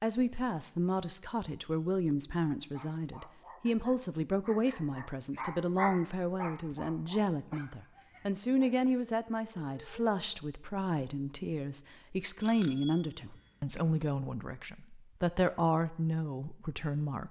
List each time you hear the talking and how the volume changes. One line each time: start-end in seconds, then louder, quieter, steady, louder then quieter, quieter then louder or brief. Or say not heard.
0.0-17.2 steady.